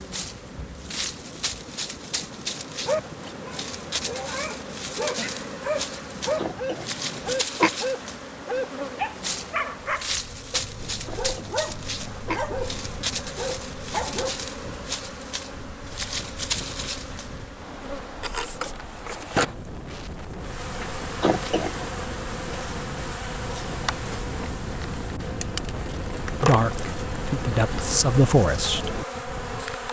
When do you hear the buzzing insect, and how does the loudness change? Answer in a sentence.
You can hear the buzzing insect from 0.0 to 29.8 s, at a steady volume.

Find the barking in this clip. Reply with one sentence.
The barking can be heard from 2.9 to 14.4 s.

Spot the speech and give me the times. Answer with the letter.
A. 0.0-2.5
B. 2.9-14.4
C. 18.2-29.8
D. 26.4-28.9
D.